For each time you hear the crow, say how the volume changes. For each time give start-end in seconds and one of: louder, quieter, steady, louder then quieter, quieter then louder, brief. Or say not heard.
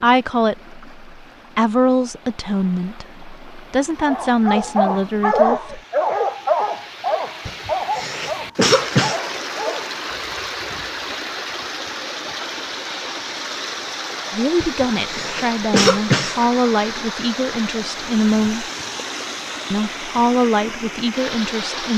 not heard.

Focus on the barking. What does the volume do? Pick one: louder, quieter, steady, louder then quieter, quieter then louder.
quieter.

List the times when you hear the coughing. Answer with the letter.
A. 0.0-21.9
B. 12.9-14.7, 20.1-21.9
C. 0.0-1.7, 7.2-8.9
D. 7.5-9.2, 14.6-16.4
D.